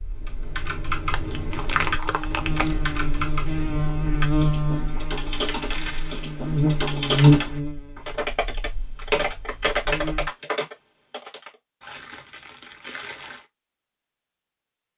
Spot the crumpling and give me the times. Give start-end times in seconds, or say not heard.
1.1-2.8, 5.5-6.2, 11.8-13.4.